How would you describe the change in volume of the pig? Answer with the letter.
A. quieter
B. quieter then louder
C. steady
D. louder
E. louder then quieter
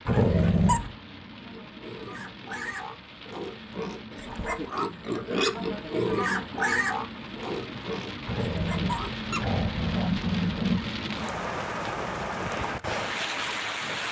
E.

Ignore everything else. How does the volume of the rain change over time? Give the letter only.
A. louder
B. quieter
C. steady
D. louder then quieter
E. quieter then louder
A.